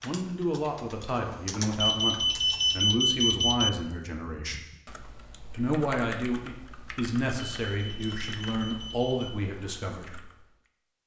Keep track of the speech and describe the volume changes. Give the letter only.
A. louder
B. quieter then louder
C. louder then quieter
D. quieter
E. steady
E.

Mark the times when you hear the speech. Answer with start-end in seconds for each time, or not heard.
0.0-4.5, 5.5-10.2.